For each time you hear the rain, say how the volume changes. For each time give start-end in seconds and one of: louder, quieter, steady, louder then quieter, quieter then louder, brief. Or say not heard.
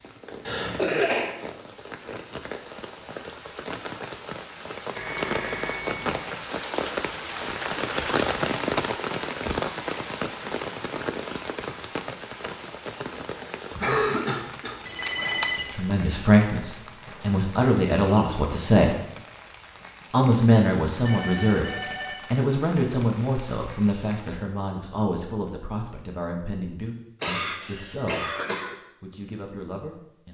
0.0-24.4 louder then quieter.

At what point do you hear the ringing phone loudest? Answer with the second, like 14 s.
15 s.